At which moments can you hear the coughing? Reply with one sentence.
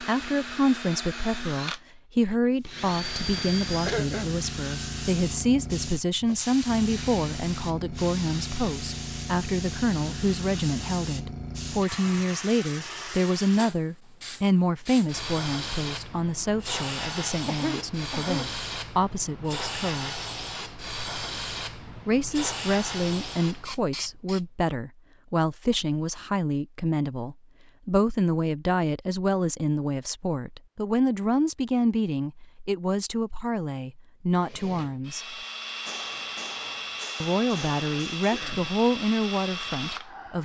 The coughing can be heard from 3.2 to 4.3 s, from 17.4 to 18.6 s and from 38.3 to 38.8 s.